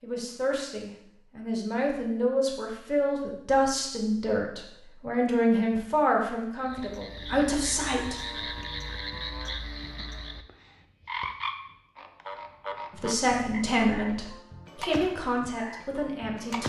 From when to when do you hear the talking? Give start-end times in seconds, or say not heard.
0.0-8.5, 12.9-16.6.